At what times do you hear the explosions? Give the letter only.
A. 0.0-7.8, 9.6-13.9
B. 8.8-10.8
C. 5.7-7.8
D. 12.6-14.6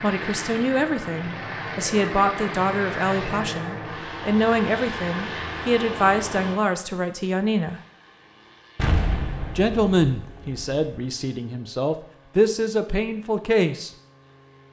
B.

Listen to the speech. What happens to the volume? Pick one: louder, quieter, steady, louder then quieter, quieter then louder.
steady.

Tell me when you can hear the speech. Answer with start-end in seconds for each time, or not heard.
0.0-7.8, 9.6-13.9.